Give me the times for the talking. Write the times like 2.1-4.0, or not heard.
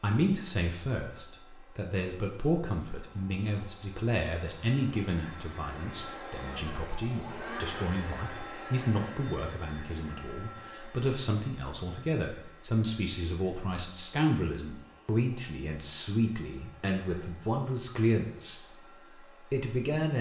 0.0-20.1.